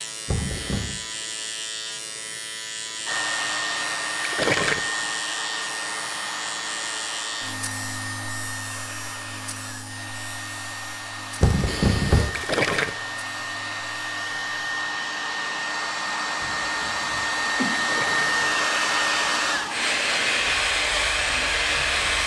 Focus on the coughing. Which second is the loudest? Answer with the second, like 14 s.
12 s.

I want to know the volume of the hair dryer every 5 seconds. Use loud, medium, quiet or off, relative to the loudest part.
medium, medium, medium, loud, loud.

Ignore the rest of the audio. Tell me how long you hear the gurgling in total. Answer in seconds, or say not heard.
2 s.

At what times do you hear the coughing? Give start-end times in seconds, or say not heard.
0.2-0.9, 11.4-12.3, 16.4-18.6.